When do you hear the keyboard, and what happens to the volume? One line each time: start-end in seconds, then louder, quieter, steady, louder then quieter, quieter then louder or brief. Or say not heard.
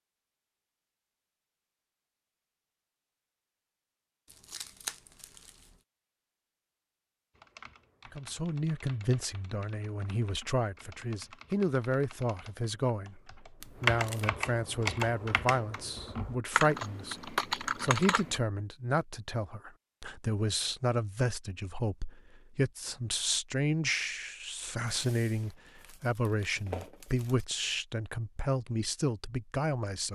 7.3-18.4 louder.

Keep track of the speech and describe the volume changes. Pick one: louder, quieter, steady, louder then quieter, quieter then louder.
steady.